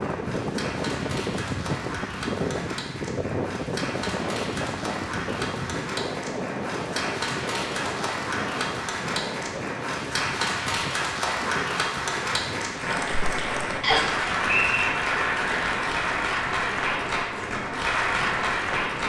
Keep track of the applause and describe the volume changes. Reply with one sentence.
The volume of the applause goes up.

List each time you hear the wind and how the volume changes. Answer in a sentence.
The wind can be heard from 0.0 to 19.0 s, getting quieter.